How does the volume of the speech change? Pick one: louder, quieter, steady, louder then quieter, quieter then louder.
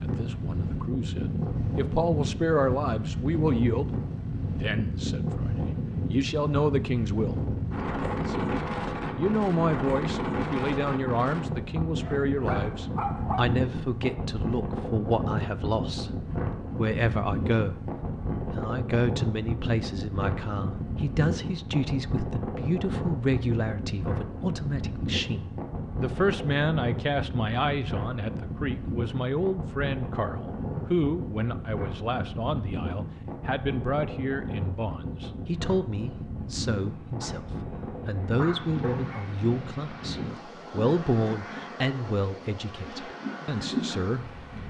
steady.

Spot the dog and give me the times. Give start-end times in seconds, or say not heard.
11.8-13.6, 37.0-37.5, 38.1-39.2.